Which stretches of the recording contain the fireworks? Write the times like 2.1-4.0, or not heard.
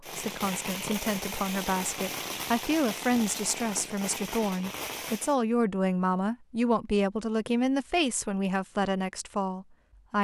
0.0-5.3.